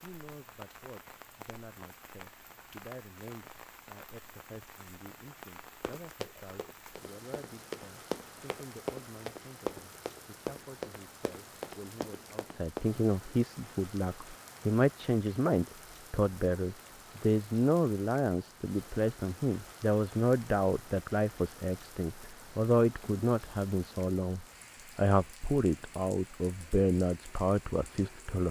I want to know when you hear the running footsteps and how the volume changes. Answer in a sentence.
You can hear the running footsteps from 5.8 to 12.9 s, getting louder then quieter.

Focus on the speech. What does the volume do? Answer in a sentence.
The volume of the speech goes up.